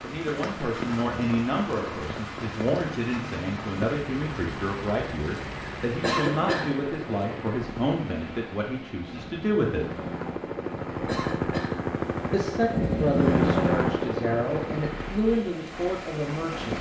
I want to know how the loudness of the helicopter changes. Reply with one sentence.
The loudness of the helicopter goes up.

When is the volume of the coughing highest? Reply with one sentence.
The loudest moment of the coughing is at 6 seconds.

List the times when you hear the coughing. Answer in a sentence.
You can hear the coughing from 6.0 to 6.7 s and from 11.1 to 11.8 s.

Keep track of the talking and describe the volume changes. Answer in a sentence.
The loudness of the talking stays about the same.